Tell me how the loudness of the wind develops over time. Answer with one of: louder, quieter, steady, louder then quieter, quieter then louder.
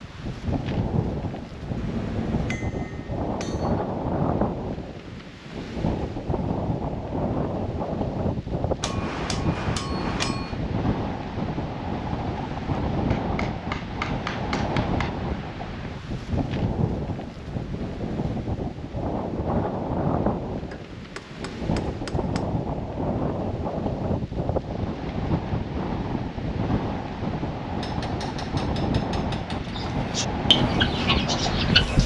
steady.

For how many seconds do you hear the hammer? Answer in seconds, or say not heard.
10 s.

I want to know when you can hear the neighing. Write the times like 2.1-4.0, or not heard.
not heard.